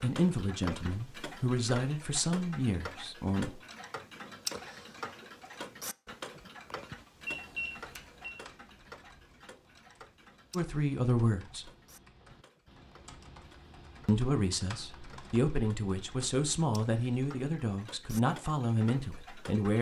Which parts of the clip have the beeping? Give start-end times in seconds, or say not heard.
7.2-8.3.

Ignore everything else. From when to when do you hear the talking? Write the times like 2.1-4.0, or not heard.
0.0-3.6, 10.6-11.7, 14.1-19.7.